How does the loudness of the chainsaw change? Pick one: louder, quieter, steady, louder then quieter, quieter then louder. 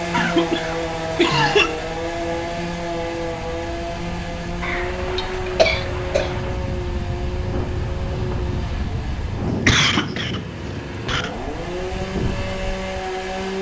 quieter then louder.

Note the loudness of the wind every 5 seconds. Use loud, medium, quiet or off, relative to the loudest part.
medium, loud, loud.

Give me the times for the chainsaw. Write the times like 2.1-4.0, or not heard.
0.0-13.5.